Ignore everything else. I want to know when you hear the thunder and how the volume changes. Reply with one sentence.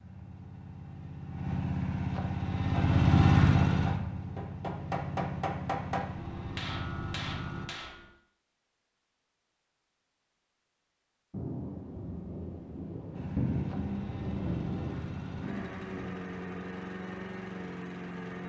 You can hear the thunder from 11.3 to 16.1 s, getting louder then quieter.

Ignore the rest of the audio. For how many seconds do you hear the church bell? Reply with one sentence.
The church bell can't be heard in this clip.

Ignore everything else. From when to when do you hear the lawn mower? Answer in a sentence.
The lawn mower can be heard from 0.0 to 7.7 s and from 13.1 to 18.4 s.